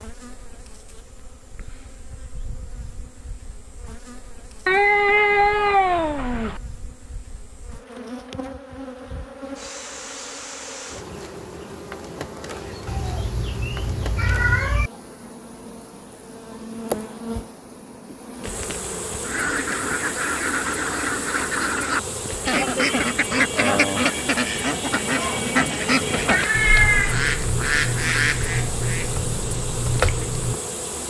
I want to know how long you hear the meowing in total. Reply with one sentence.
You can hear the meowing for 5 seconds altogether.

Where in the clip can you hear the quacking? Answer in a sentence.
You can hear the quacking from 19.2 to 30.6 s.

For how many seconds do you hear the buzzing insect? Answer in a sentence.
The buzzing insect can be heard for 31 seconds in total.